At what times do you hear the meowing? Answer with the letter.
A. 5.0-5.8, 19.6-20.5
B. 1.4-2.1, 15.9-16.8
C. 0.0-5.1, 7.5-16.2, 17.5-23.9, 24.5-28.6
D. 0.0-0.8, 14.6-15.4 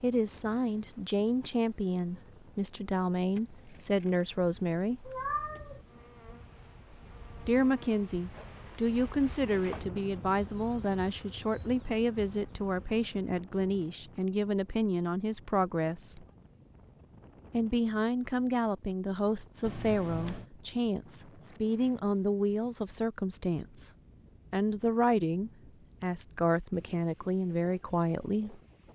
A.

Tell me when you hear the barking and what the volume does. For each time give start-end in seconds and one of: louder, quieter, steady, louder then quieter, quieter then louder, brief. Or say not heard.
not heard.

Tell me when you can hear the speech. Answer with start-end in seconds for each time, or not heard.
0.0-5.1, 7.5-16.2, 17.5-23.9, 24.5-28.6.